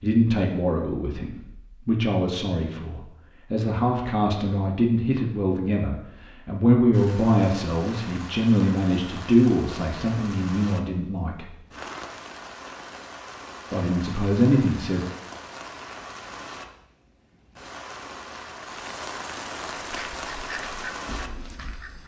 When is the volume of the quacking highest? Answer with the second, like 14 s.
21 s.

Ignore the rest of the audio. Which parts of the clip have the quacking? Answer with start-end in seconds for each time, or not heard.
19.8-22.0.